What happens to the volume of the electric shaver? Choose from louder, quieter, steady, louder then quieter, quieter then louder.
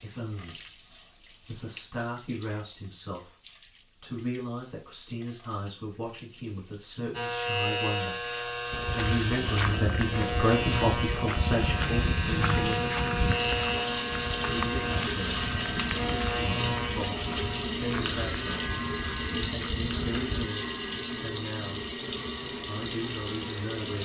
quieter.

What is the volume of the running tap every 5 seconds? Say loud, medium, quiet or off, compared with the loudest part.
quiet, quiet, loud, loud, loud.